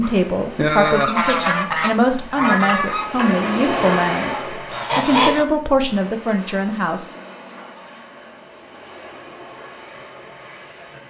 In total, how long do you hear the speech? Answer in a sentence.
The speech can be heard for 7 seconds in total.